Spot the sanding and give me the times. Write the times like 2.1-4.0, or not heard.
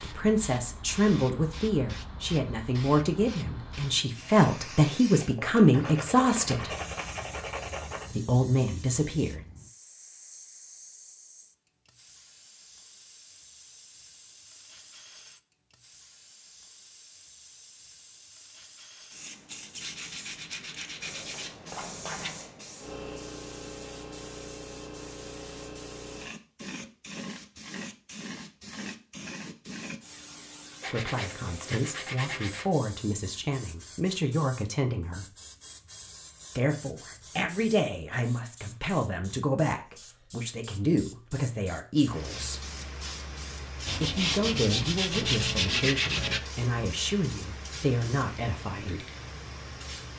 5.2-8.2, 19.8-22.4, 30.8-32.7, 43.9-46.4.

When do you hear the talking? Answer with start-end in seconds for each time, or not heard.
0.0-6.7, 8.2-9.4, 30.9-35.2, 36.5-42.6, 44.0-49.1.